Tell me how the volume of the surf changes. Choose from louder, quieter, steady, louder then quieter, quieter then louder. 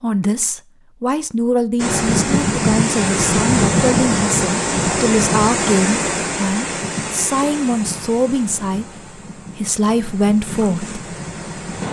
quieter.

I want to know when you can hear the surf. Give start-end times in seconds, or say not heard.
1.8-11.8.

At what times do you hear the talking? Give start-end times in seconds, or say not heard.
0.0-10.9.